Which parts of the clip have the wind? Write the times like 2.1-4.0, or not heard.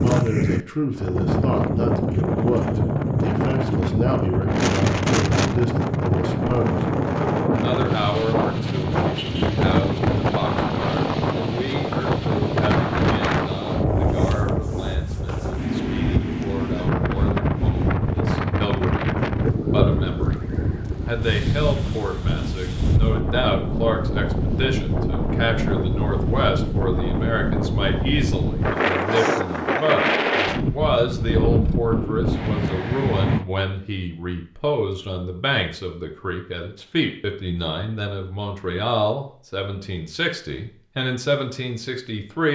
0.0-33.5.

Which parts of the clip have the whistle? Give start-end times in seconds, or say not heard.
not heard.